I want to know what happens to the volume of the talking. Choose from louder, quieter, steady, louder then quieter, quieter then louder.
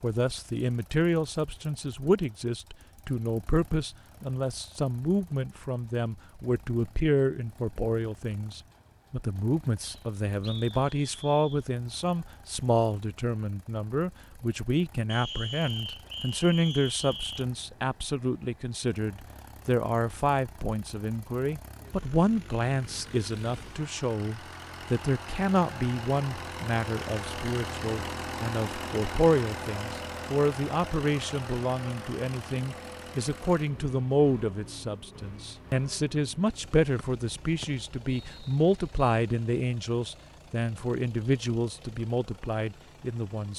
steady.